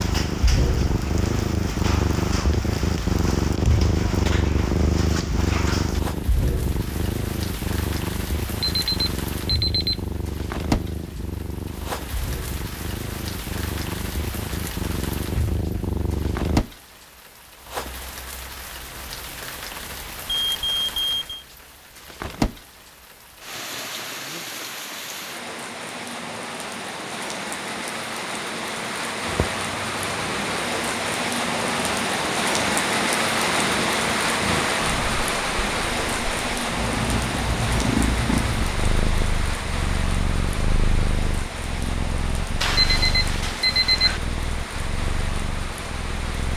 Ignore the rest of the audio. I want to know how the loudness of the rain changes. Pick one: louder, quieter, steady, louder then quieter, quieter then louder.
louder then quieter.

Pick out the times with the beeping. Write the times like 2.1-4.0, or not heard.
8.6-9.9, 20.2-21.4, 42.6-44.2.